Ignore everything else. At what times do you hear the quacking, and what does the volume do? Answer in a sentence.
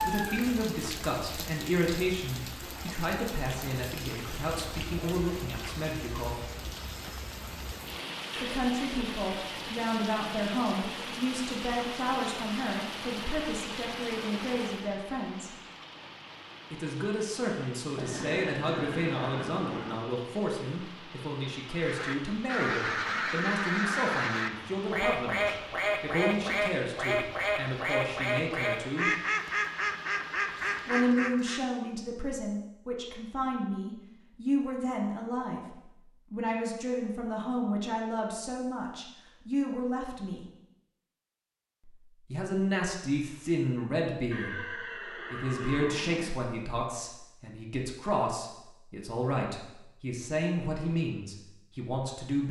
You can hear the quacking from 21.7 to 31.6 s, at a steady volume.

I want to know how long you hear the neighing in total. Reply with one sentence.
The neighing can be heard for 5 seconds in total.